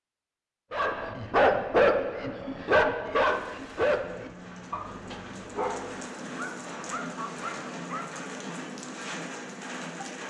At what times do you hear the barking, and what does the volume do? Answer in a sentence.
You can hear the barking from 0.7 to 8.2 s, getting quieter.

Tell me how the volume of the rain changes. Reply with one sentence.
The loudness of the rain goes up.